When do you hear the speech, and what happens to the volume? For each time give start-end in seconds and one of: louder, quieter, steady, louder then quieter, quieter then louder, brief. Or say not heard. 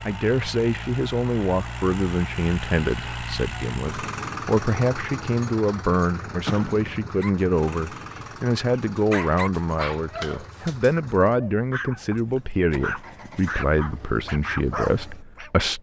0.1-15.7 steady.